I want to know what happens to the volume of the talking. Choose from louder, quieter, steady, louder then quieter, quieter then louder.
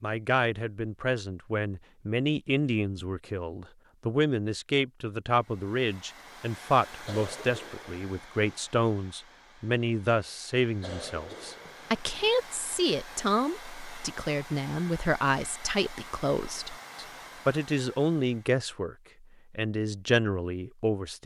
steady.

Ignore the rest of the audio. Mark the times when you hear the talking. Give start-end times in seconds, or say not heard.
0.0-21.2.